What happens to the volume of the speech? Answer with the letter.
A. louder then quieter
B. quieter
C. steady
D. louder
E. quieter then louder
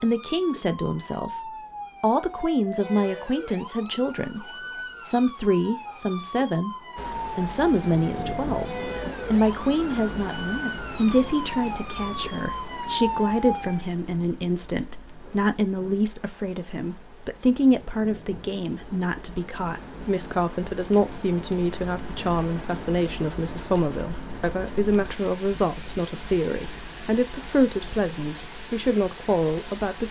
C.